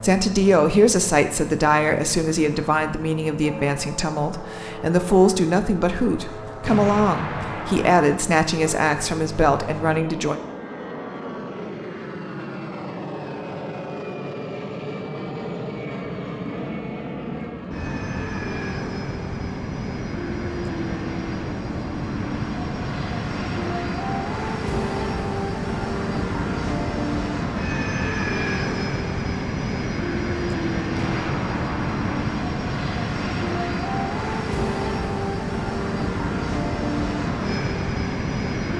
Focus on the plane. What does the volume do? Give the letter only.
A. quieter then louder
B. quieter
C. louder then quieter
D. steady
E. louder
E.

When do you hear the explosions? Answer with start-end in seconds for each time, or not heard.
6.7-8.1, 30.9-32.2.